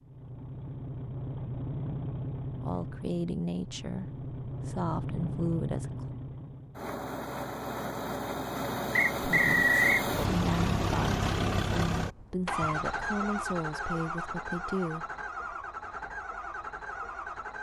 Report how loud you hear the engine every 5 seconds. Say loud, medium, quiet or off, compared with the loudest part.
medium, loud, loud, medium.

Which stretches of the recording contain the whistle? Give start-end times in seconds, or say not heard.
8.9-10.1.